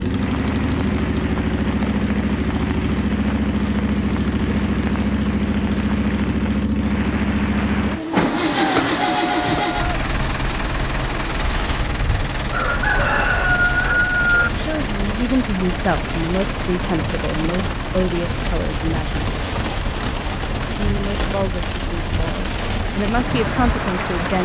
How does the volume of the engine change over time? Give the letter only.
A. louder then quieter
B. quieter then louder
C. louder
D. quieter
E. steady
D.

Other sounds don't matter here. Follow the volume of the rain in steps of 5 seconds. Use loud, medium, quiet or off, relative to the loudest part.
medium, medium, medium, loud, loud.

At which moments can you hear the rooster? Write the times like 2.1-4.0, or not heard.
8.6-9.8, 12.5-14.5.